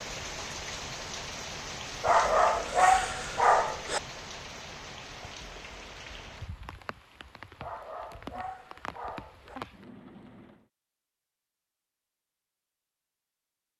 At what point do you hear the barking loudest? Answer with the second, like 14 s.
3 s.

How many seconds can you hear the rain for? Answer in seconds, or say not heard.
11 s.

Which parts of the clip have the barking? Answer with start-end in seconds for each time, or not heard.
2.0-4.0, 7.6-9.6.